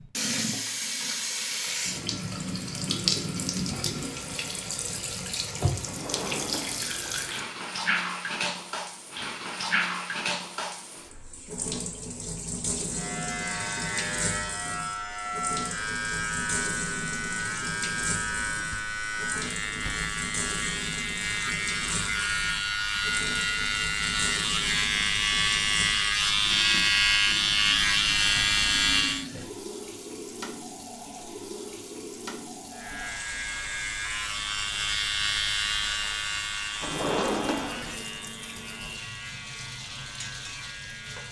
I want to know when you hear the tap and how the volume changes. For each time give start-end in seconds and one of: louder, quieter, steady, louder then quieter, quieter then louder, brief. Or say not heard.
0.0-41.2 quieter.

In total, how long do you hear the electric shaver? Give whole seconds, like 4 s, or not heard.
25 s.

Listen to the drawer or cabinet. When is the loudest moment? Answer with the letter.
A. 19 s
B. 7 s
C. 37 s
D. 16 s
C.